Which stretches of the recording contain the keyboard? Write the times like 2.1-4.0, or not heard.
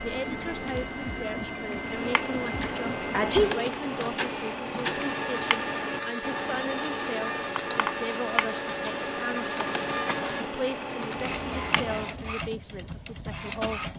1.8-12.2.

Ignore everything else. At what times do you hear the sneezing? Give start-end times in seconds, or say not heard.
2.6-3.7.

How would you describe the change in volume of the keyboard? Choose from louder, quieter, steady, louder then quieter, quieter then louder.
steady.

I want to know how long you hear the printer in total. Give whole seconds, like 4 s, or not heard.
14 s.